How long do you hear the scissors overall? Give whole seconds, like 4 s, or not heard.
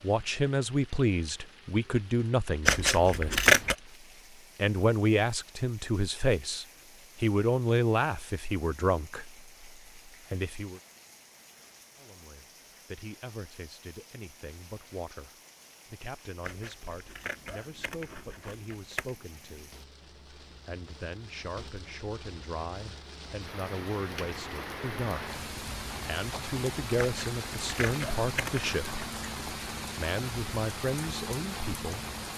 6 s.